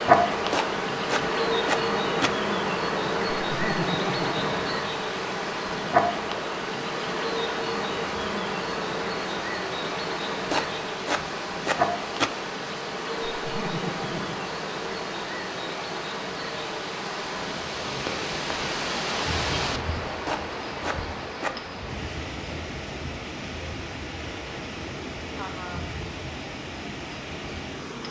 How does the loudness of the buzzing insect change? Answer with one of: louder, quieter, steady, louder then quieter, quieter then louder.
quieter.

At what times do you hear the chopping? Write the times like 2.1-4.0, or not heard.
0.5-2.4, 10.5-12.3, 20.2-21.6.